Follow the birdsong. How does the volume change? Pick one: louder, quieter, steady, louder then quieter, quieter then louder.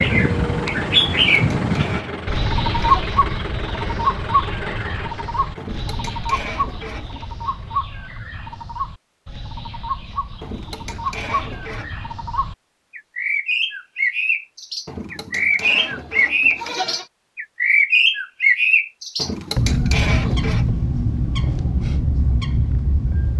quieter then louder.